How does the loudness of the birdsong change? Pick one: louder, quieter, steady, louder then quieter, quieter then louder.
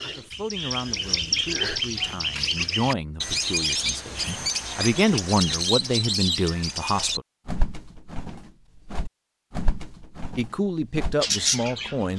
quieter then louder.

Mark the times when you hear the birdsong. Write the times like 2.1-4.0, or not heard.
0.0-12.1.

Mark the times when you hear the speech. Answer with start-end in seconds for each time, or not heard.
0.0-7.2, 10.3-12.1.